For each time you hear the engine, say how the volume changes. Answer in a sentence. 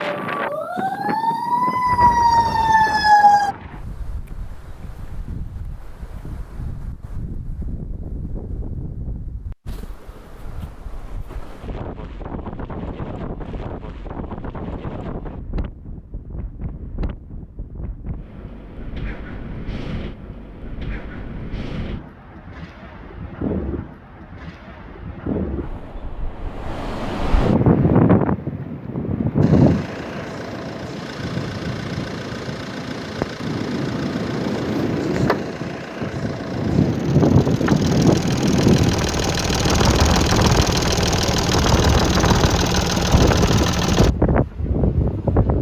You can hear the engine from 29.4 to 44.1 s, getting louder.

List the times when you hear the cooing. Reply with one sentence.
The cooing can't be heard in this clip.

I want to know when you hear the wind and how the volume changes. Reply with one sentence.
You can hear the wind from 0.0 to 45.5 s, getting louder.